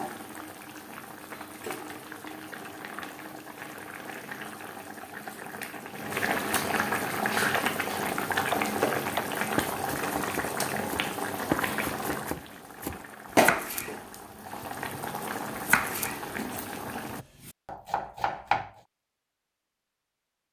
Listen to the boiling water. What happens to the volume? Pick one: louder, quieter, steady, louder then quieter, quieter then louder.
louder then quieter.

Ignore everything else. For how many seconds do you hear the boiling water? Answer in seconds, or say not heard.
17 s.